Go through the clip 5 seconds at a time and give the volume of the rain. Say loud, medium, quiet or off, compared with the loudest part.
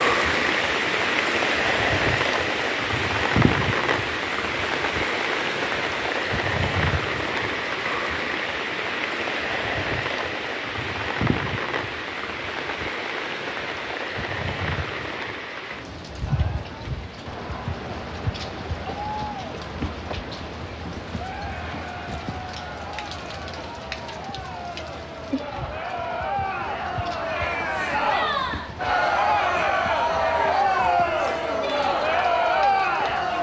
loud, loud, medium, medium, quiet, quiet, quiet.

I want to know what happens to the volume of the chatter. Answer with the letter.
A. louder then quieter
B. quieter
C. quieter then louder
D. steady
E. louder
E.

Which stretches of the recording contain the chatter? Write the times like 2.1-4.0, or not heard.
16.2-33.3.